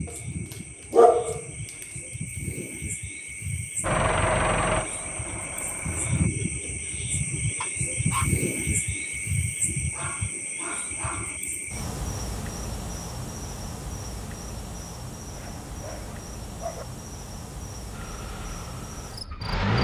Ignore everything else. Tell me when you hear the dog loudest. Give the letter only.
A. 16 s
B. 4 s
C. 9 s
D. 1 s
D.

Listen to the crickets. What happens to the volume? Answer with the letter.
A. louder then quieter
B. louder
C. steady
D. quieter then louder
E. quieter
A.